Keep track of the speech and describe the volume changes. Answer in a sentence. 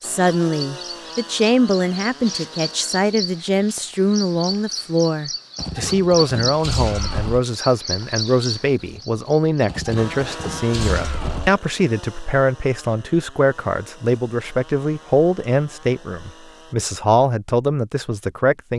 The volume of the speech stays about the same.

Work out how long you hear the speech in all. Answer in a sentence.
The speech can be heard for 19 seconds in total.